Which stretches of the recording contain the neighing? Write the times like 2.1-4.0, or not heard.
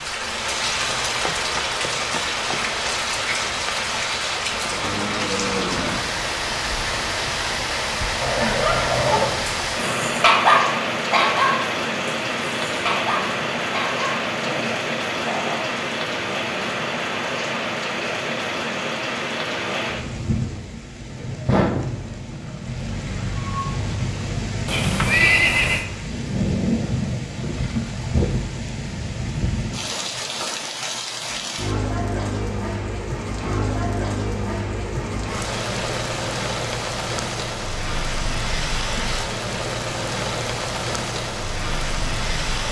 24.6-25.9.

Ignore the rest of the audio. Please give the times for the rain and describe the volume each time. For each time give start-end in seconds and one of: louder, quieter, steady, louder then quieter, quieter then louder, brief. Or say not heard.
0.0-42.6 steady.